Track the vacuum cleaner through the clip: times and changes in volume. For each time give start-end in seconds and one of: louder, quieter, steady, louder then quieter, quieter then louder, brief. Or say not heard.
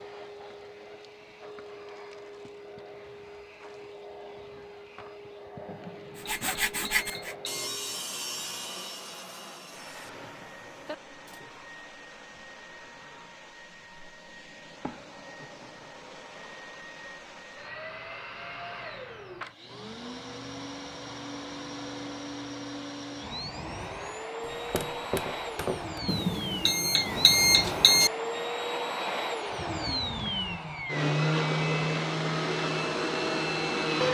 0.0-34.0 louder.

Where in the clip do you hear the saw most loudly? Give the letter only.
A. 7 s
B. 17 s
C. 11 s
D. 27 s
A.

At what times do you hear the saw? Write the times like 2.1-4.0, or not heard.
6.2-11.6.